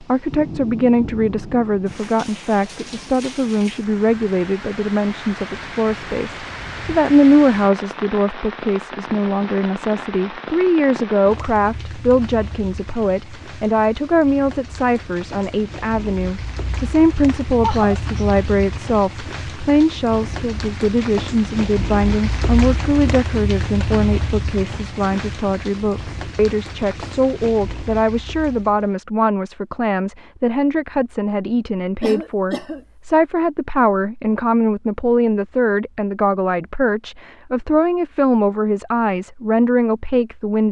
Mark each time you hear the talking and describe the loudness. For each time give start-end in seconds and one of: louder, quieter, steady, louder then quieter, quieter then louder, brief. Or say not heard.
0.0-40.6 steady.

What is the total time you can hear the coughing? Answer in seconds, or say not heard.
2 s.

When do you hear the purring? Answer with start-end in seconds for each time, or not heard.
not heard.